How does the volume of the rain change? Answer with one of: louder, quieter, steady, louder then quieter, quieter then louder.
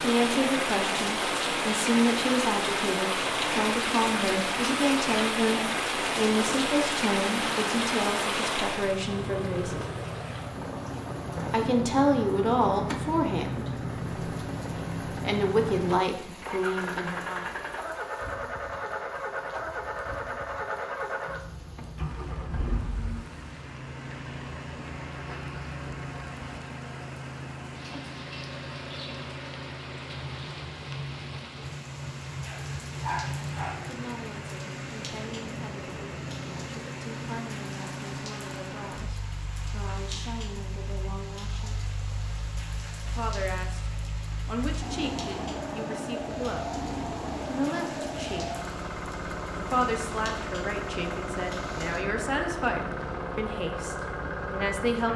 quieter.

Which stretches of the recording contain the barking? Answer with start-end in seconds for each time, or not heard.
32.4-33.9.